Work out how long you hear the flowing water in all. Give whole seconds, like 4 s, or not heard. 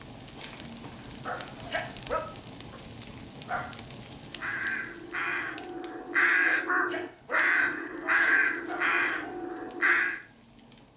not heard.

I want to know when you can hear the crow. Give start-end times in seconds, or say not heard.
4.2-10.2.